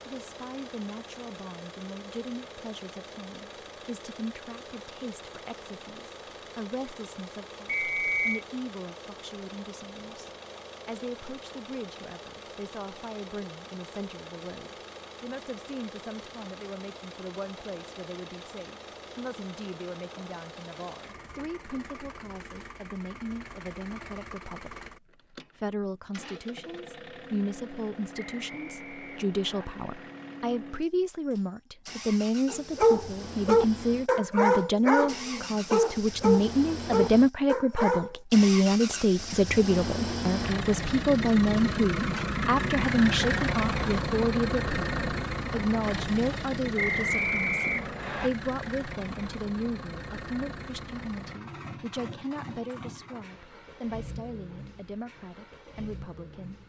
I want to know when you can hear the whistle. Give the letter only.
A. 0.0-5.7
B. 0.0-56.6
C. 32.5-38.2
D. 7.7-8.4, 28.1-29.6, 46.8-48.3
D.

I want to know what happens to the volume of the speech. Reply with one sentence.
The volume of the speech goes up, then down.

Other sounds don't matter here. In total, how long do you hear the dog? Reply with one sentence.
The dog can be heard for 6 seconds in total.